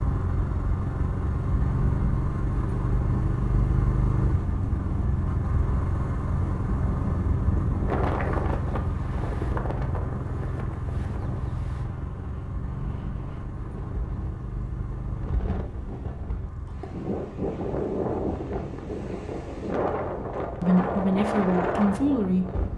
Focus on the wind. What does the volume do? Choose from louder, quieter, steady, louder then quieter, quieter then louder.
quieter then louder.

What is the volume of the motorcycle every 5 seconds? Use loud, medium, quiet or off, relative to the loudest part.
loud, loud, medium, quiet, quiet.